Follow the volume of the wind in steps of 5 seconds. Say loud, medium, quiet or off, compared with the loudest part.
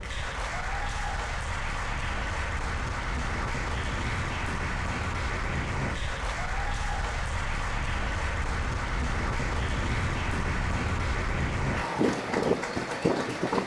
medium, medium, loud.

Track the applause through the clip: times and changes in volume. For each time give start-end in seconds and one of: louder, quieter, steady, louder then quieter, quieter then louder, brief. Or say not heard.
0.0-13.6 steady.